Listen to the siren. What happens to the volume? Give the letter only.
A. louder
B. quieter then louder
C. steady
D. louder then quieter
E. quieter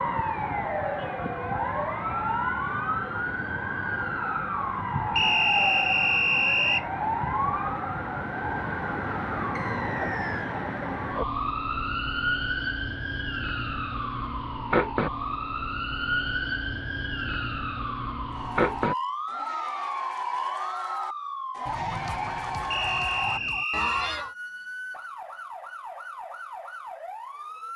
E.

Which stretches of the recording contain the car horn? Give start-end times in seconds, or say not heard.
not heard.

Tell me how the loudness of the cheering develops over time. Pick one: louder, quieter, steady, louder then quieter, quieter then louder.
louder.